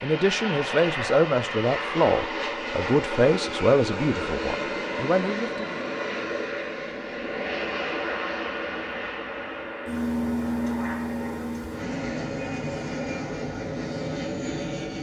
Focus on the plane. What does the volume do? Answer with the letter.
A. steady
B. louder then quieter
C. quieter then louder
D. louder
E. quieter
A.